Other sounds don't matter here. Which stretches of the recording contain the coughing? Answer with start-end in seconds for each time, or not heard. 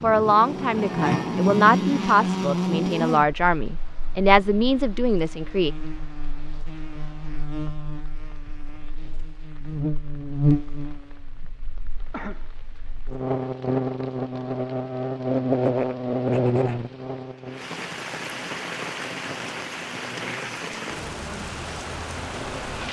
12.1-12.5.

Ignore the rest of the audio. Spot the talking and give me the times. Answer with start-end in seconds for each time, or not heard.
0.0-5.7.